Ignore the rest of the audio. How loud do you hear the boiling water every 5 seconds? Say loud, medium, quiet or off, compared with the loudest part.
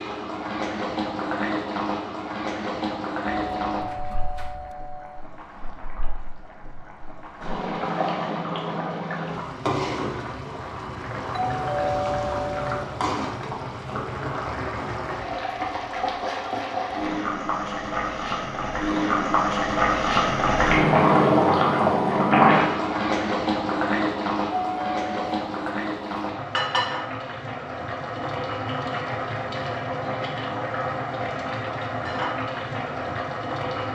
medium, medium, medium, medium, loud, medium, medium.